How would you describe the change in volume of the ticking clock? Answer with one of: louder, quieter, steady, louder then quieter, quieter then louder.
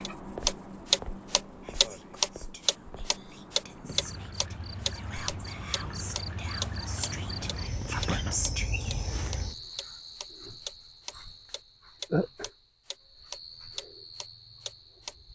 quieter.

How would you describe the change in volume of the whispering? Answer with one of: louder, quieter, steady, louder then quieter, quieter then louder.
louder.